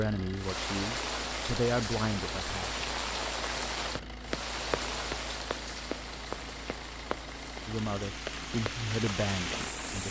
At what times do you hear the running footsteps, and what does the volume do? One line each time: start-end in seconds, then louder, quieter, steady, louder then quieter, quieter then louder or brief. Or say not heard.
3.5-9.2 steady.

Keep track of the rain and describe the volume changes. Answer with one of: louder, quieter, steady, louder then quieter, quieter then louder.
quieter then louder.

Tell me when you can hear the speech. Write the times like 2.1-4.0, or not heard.
0.0-2.9, 7.7-10.0.